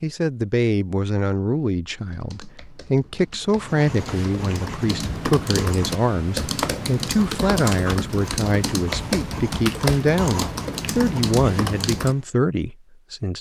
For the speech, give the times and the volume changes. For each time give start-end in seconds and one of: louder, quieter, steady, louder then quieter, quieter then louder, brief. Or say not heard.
0.0-13.3 steady.